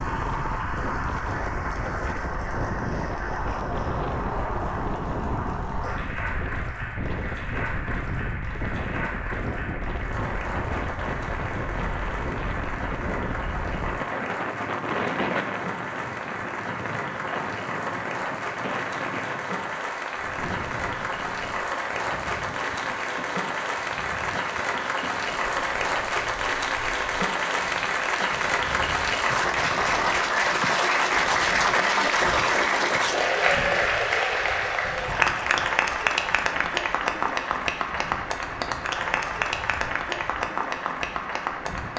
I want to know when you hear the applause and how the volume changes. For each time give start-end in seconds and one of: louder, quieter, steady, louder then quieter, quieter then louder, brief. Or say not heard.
0.0-41.9 louder.